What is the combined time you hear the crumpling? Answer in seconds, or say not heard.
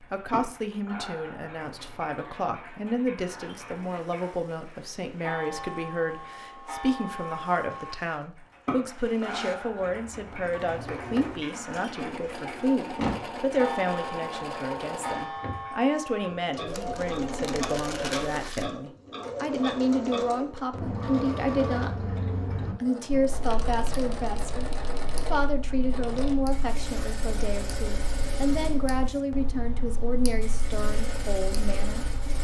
2 s.